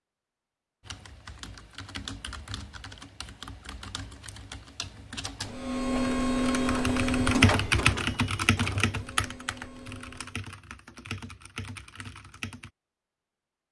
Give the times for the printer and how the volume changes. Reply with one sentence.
The printer can be heard from 5.5 to 10.4 s, getting quieter.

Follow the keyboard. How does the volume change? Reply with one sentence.
The volume of the keyboard goes up, then down.